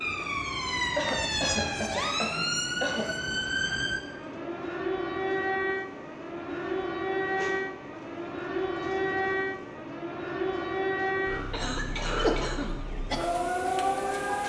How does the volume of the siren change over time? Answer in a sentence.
The loudness of the siren stays about the same.